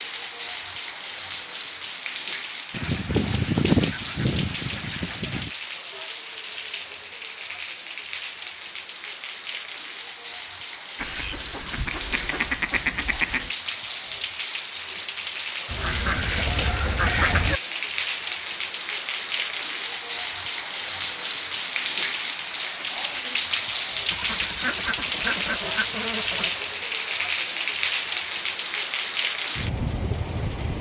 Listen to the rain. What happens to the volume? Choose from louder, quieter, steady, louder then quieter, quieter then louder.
louder.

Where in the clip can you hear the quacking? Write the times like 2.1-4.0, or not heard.
2.7-5.5, 10.9-13.5, 15.7-17.6, 24.1-26.6.